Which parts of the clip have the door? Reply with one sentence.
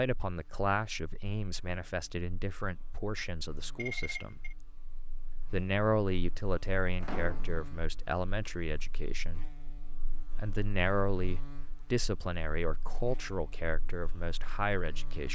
The door can be heard from 7.0 to 7.7 s.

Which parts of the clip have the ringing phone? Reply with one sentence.
The ringing phone can be heard from 3.8 to 4.5 s.